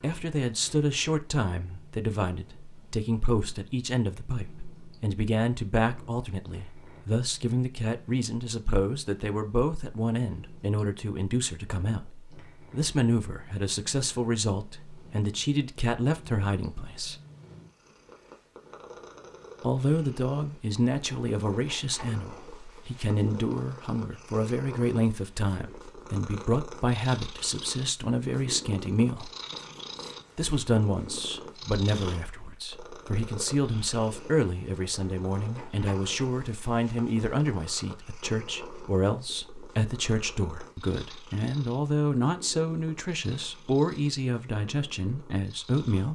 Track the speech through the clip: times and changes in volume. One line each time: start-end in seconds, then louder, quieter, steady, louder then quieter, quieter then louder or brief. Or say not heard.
0.0-17.1 steady
19.6-29.3 steady
30.4-46.1 steady.